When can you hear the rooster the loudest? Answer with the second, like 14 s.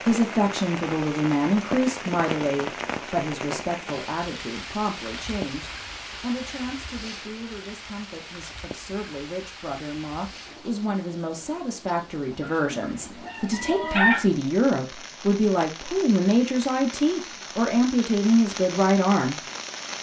14 s.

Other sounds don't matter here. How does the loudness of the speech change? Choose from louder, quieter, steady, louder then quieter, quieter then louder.
quieter then louder.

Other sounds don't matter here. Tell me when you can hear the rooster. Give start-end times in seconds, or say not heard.
12.4-14.2.